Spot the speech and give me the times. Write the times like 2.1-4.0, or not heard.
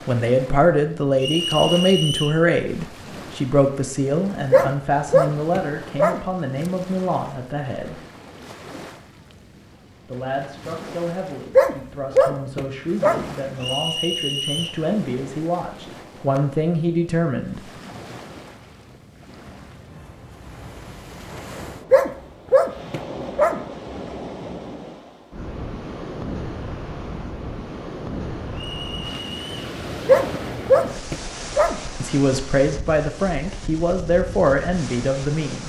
0.1-8.0, 10.1-17.7, 32.0-35.6.